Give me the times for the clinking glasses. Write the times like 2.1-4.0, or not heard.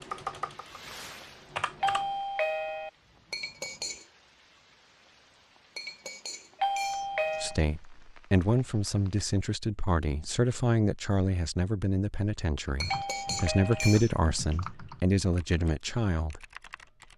3.3-4.0, 5.8-7.6, 12.8-14.7.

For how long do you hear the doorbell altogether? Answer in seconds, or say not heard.
3 s.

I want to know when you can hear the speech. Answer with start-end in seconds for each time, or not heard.
7.4-16.4.